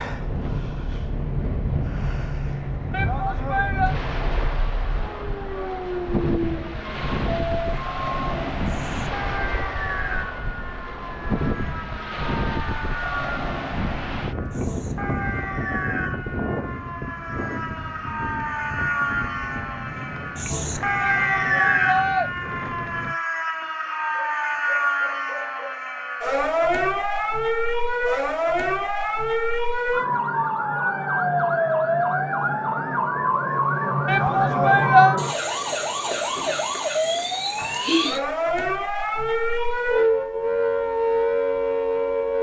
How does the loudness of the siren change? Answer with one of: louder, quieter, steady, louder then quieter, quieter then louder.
louder.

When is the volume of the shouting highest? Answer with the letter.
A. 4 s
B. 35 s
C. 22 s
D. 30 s
B.